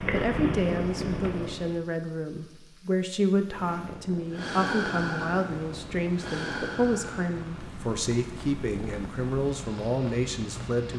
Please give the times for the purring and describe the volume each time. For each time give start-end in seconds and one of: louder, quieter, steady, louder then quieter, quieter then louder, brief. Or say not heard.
0.0-1.8 brief
3.3-10.9 quieter.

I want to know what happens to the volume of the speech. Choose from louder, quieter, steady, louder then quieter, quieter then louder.
steady.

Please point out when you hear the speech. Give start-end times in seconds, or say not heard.
0.1-10.9.